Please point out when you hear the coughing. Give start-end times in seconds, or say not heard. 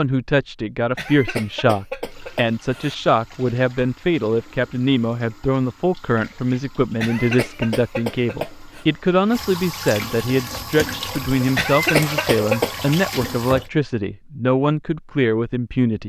0.9-3.0, 7.0-8.8, 11.6-12.8.